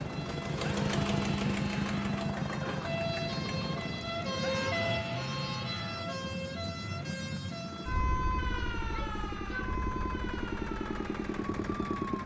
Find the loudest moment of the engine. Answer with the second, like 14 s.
1 s.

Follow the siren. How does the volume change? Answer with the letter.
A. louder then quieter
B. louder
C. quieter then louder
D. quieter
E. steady
A.